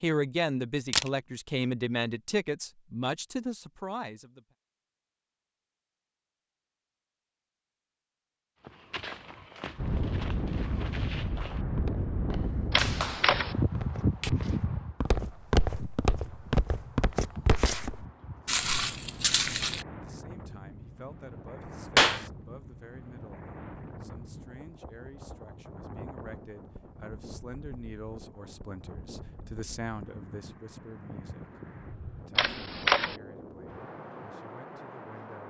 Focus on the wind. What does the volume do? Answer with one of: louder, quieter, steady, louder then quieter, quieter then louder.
quieter.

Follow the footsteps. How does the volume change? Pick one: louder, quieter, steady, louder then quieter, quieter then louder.
louder.